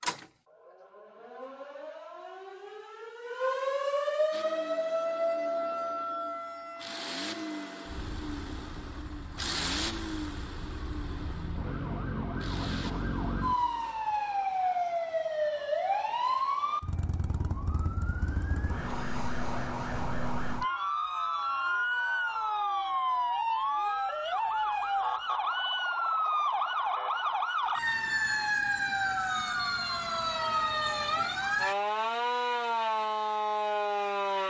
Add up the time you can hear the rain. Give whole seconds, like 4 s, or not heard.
not heard.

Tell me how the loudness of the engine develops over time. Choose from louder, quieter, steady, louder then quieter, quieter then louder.
louder then quieter.